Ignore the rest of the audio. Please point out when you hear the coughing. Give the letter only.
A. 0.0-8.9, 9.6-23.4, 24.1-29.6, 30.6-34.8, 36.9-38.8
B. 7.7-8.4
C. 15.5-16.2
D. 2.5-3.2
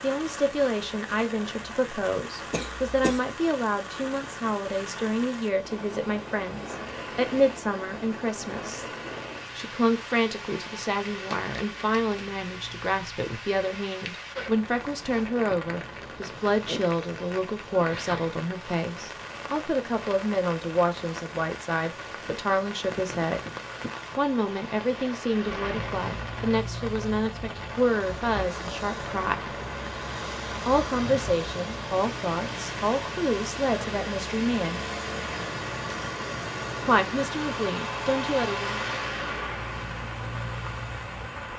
D.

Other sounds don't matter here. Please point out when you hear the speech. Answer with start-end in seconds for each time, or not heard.
0.0-8.9, 9.6-23.4, 24.1-29.6, 30.6-34.8, 36.9-38.8.